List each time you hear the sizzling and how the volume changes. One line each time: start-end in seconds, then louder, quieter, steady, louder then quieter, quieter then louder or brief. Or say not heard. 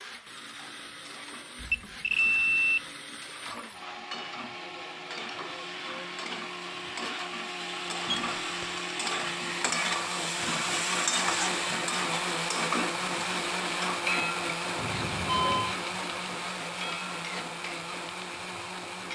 0.0-19.1 louder then quieter.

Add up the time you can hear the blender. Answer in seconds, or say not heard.
19 s.